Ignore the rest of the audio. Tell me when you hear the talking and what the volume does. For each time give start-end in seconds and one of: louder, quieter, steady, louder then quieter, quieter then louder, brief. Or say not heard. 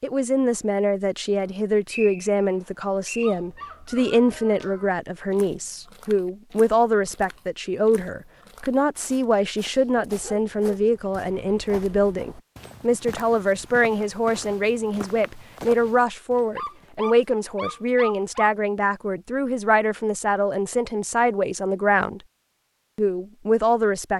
0.0-22.2 steady
22.9-24.1 brief.